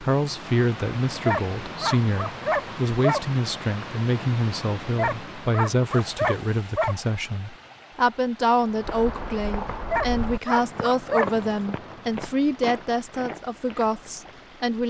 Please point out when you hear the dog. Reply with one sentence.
The dog can be heard from 1.2 to 3.2 s, from 5.0 to 7.0 s and from 9.9 to 11.3 s.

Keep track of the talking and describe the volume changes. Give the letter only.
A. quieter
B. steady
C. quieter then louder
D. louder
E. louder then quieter
B.